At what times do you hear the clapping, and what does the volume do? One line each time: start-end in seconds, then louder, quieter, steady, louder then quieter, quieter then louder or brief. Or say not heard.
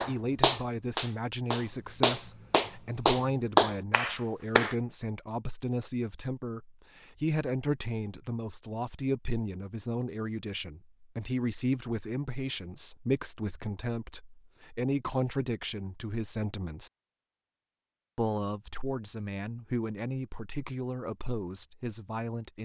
0.0-4.8 quieter then louder.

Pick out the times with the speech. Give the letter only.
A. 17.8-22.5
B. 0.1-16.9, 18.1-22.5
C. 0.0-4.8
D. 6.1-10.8
B.